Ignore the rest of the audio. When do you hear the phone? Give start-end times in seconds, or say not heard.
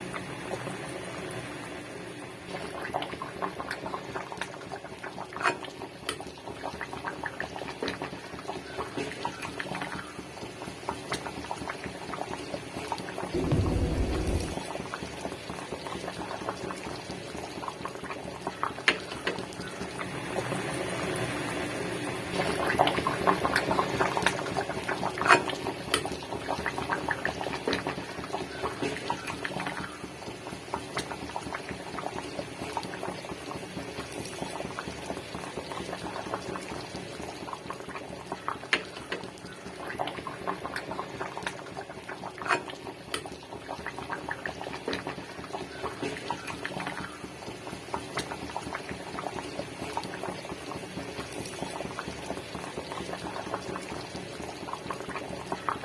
13.3-14.6.